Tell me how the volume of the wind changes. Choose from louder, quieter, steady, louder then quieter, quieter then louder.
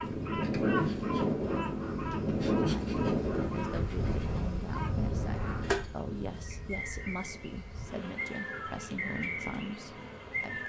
quieter.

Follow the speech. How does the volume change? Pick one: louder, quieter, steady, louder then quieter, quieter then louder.
steady.